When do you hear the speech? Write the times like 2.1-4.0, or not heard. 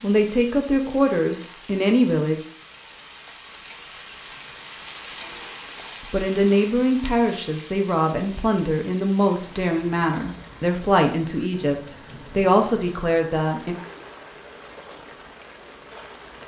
0.0-2.4, 6.0-13.8.